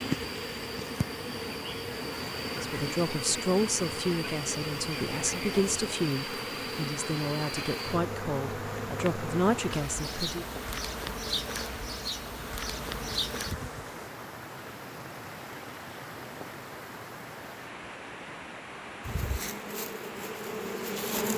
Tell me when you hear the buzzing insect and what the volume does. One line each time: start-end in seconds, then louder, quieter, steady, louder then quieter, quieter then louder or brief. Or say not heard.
0.0-14.1 steady
19.0-21.3 brief.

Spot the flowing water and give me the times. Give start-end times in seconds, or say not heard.
0.0-21.2.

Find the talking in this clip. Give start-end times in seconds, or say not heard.
2.5-10.4.